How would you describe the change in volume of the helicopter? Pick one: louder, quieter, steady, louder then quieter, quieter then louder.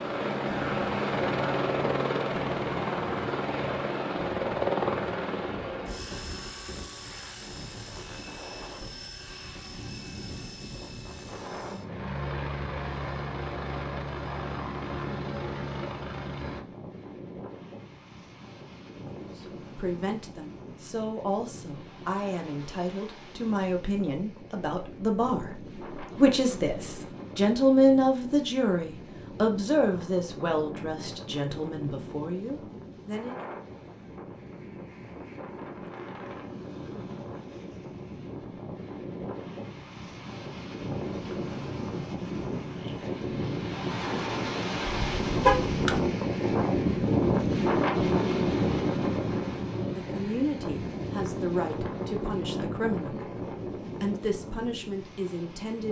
quieter then louder.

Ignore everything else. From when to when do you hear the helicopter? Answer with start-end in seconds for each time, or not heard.
0.0-16.6.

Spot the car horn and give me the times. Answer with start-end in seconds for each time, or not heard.
44.9-46.0.